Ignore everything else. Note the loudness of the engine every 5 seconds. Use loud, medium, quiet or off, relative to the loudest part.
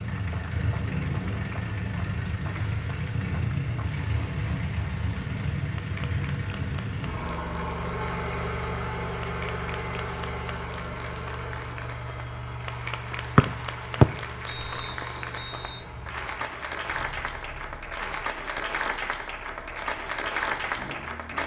loud, loud, medium, quiet, quiet.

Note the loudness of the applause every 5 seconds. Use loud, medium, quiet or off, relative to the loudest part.
quiet, quiet, medium, loud, loud.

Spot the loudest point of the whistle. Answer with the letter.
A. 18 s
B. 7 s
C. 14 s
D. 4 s
C.